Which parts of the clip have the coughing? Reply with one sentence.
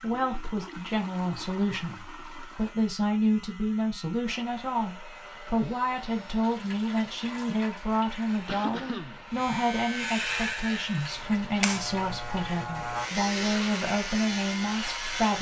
The coughing can be heard from 7.9 to 9.2 s.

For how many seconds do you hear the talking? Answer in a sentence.
The talking can be heard for 15 seconds in total.